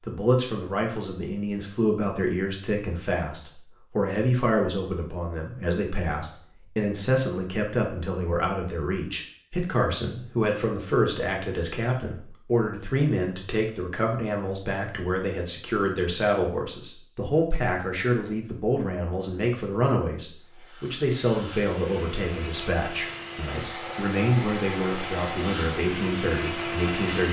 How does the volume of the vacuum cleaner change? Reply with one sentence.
The loudness of the vacuum cleaner goes up.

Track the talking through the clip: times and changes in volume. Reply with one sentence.
You can hear the talking from 0.0 to 27.2 s, at a steady volume.